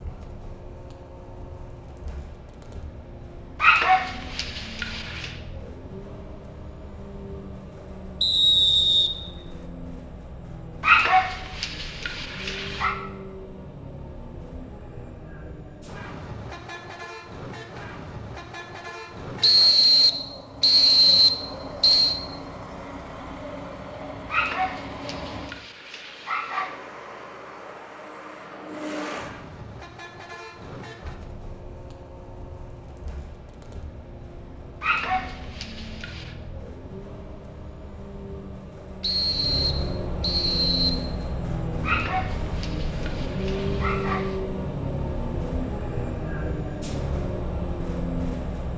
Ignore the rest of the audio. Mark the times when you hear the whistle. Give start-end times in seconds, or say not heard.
8.2-9.6, 19.4-22.2, 39.0-41.0.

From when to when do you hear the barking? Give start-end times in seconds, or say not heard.
3.6-5.3, 10.8-12.9, 24.3-26.7, 34.8-36.4, 41.8-44.4.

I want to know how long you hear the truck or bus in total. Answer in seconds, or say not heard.
49 s.